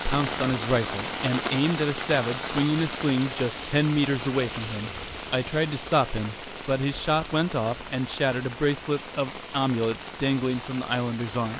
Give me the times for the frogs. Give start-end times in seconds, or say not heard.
not heard.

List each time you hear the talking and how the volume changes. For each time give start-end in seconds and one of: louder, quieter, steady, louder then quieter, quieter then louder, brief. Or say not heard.
0.1-11.5 steady.